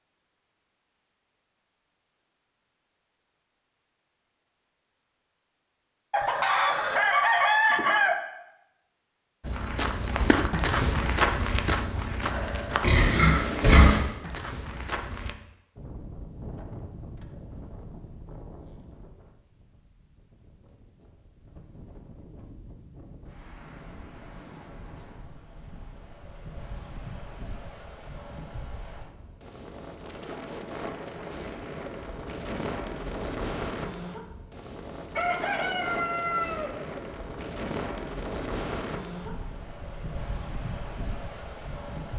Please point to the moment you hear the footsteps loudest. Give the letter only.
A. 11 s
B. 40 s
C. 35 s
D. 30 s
A.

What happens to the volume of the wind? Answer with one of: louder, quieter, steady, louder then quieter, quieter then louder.
louder.